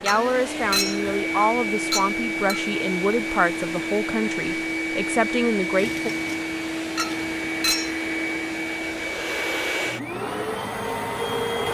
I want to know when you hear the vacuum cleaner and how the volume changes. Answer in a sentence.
You can hear the vacuum cleaner from 0.0 to 11.6 s, at a steady volume.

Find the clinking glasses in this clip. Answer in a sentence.
You can hear the clinking glasses from 0.1 to 2.6 s and from 7.0 to 8.0 s.